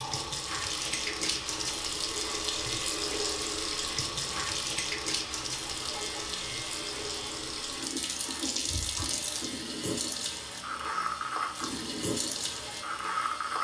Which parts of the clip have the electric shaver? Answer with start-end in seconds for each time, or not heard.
0.0-13.6.